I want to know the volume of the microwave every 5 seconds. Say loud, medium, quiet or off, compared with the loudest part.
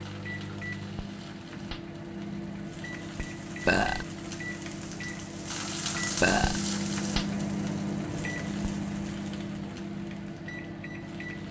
medium, loud, medium.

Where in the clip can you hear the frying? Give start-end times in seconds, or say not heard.
0.0-11.4.